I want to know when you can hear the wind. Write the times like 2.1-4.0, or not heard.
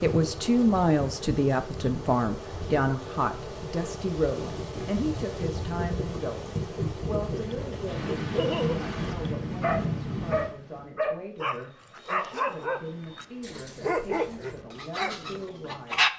0.0-16.1.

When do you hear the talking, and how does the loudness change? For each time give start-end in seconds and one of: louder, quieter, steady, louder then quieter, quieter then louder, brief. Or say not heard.
0.0-16.1 quieter.